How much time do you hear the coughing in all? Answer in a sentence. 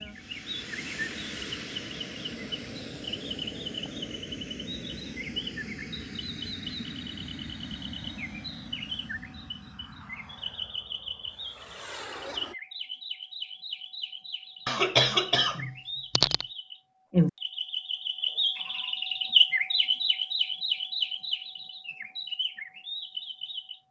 You can hear the coughing for 2 seconds altogether.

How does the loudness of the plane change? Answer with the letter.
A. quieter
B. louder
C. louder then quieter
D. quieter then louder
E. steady
A.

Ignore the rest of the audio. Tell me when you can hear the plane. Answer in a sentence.
The plane can be heard from 0.0 to 12.6 s.